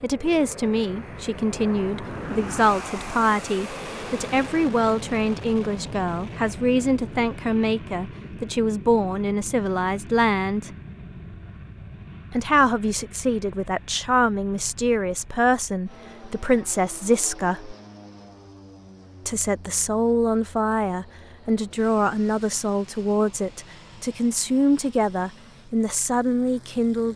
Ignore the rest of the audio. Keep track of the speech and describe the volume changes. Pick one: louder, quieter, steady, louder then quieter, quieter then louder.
steady.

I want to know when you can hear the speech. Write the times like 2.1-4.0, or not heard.
0.0-10.7, 12.3-17.8, 19.2-27.1.